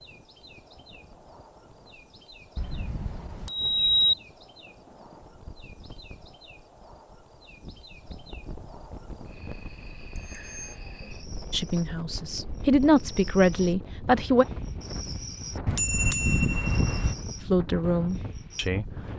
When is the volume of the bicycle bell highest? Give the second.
4 s.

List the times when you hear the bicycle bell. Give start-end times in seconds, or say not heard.
2.5-4.2, 10.2-10.8, 15.7-17.1.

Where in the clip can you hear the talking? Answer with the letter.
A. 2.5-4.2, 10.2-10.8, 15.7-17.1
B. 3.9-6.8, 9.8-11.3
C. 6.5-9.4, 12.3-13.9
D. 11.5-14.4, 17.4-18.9
D.